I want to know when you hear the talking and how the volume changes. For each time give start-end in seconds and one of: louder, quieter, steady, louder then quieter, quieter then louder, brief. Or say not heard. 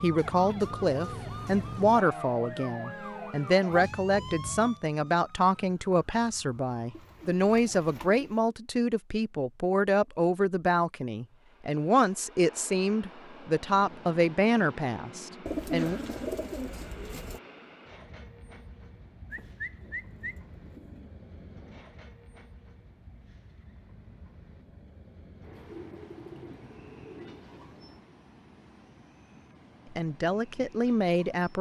0.0-16.0 steady
29.9-31.5 brief.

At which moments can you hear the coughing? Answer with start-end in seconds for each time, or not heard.
not heard.